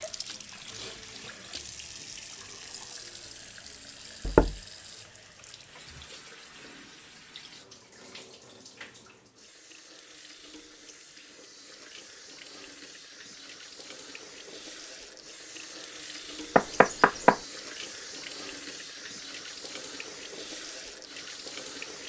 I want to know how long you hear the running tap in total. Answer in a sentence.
You can hear the running tap for 22 seconds altogether.